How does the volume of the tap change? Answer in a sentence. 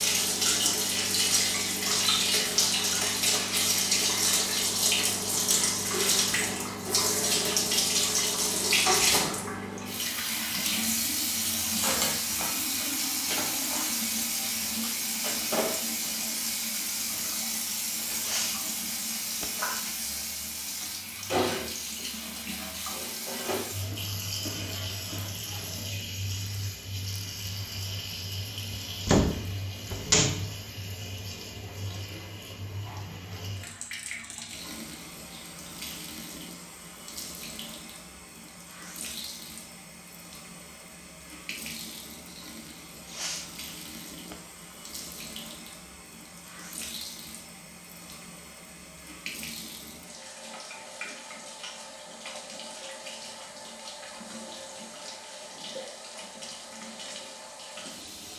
The volume of the tap goes down.